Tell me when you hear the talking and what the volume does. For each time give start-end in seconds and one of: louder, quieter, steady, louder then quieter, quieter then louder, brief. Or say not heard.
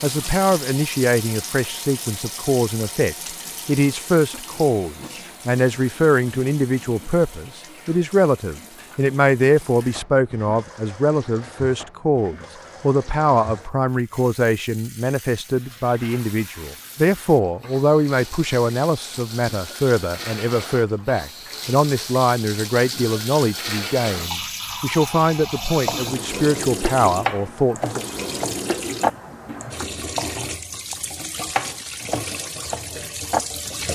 0.0-28.0 steady.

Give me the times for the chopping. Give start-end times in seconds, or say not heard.
25.9-33.4.